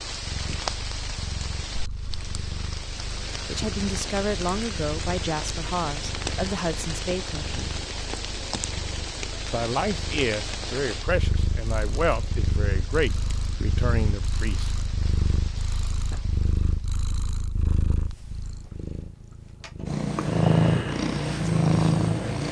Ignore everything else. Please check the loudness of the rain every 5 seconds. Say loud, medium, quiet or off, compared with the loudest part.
loud, loud, medium, quiet, off.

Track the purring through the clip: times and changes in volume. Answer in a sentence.
You can hear the purring from 0.0 to 22.4 s, getting louder.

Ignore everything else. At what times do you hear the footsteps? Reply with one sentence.
The footsteps can't be heard in this clip.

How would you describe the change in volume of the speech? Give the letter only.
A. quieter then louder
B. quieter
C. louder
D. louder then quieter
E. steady
E.